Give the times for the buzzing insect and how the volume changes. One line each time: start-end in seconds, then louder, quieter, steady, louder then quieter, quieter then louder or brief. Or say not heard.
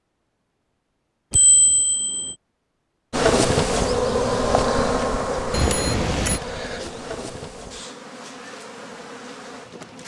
3.1-10.0 quieter.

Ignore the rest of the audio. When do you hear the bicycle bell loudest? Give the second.
6 s.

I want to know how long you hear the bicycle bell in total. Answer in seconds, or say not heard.
2 s.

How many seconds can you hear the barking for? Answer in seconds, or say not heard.
not heard.